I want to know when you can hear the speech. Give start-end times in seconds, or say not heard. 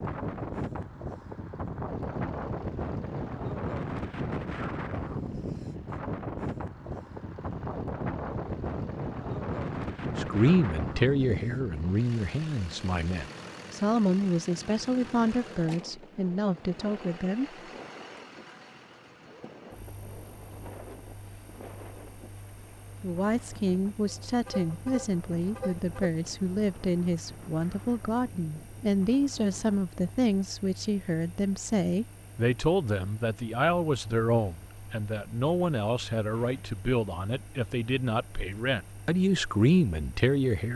10.2-17.5, 23.0-40.7.